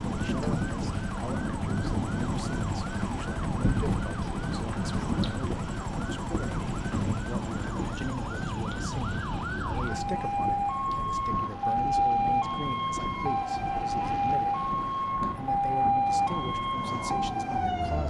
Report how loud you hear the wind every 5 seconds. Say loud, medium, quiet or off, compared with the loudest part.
loud, loud, medium, medium.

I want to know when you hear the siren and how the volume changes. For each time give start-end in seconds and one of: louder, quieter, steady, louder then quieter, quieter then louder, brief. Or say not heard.
0.0-18.0 louder.